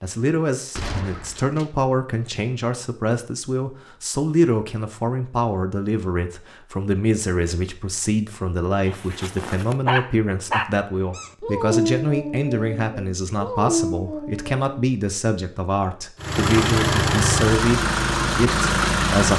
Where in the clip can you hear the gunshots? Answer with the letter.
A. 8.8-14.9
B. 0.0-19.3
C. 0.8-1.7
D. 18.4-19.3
C.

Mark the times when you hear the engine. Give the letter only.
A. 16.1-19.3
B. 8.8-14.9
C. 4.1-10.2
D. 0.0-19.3
A.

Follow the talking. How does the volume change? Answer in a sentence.
The volume of the talking stays about the same.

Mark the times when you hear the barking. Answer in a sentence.
You can hear the barking from 8.8 to 14.9 s.